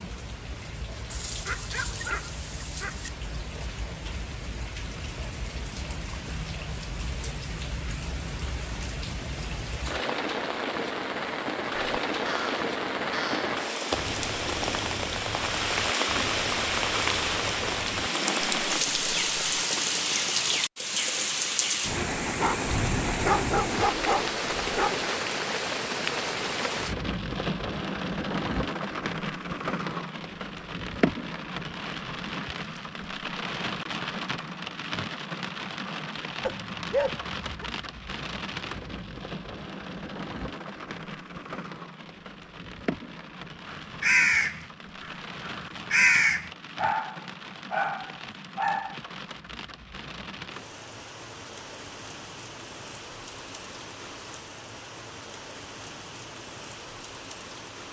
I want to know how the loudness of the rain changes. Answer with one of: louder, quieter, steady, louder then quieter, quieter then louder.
louder then quieter.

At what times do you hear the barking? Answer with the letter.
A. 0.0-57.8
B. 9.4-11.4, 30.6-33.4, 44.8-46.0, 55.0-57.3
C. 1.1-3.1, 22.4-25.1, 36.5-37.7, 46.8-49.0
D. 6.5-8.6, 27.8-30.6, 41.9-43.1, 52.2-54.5
C.